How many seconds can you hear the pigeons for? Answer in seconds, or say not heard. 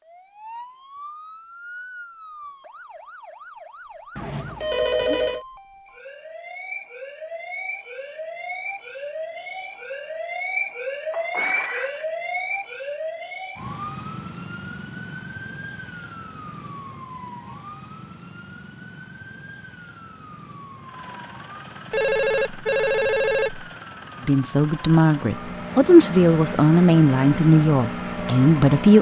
not heard.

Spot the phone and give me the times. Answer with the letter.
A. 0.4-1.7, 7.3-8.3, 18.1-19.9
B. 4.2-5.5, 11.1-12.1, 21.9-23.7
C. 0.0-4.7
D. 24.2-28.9
B.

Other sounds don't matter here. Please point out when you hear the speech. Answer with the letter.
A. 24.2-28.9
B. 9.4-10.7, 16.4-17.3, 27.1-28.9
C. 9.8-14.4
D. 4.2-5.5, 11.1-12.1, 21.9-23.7
A.